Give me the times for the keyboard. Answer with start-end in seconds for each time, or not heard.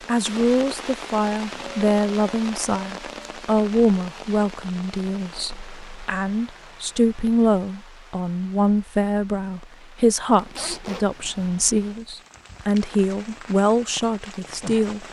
not heard.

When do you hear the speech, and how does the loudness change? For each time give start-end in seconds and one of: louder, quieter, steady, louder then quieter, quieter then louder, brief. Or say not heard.
0.1-15.0 steady.